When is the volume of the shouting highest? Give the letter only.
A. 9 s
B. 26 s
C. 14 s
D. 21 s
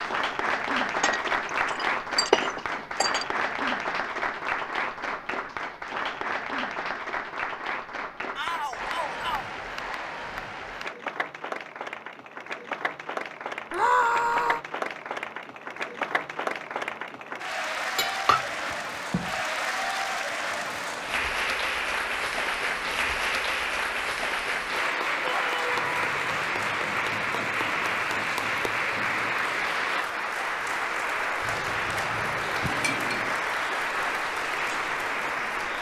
C.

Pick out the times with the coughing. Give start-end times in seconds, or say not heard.
not heard.